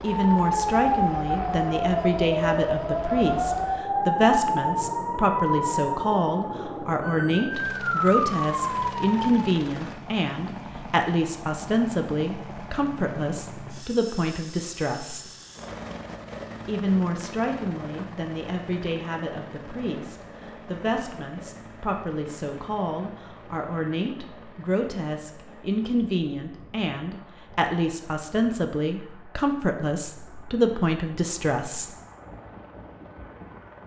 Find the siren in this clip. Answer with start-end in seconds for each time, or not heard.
0.1-9.4.